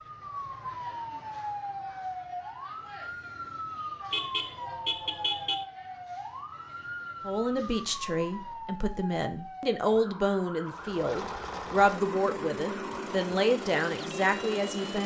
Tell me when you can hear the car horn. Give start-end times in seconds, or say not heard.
4.1-5.7.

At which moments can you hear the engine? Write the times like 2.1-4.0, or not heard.
10.7-15.0.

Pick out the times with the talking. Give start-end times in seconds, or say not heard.
7.2-15.0.